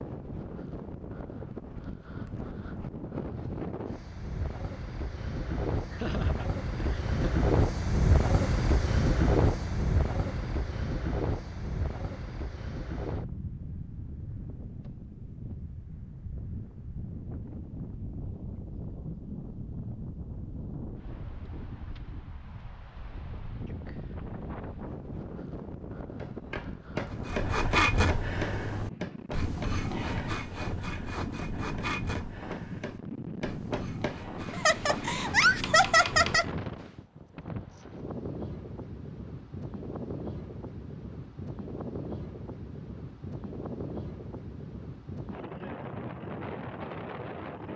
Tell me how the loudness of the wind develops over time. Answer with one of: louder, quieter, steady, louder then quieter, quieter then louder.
quieter.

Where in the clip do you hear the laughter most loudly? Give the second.
36 s.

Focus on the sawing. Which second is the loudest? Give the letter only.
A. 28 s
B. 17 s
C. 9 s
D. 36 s
A.